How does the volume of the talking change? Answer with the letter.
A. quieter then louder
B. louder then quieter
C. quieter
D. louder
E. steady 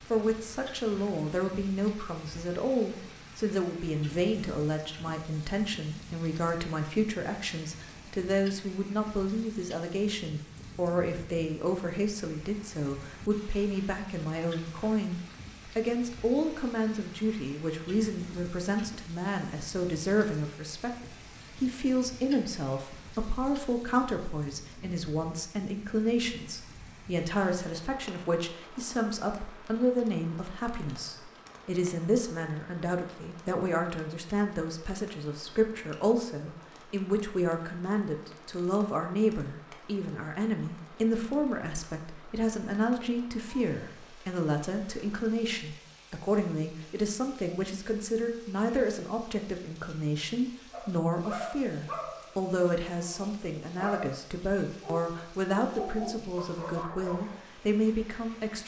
E.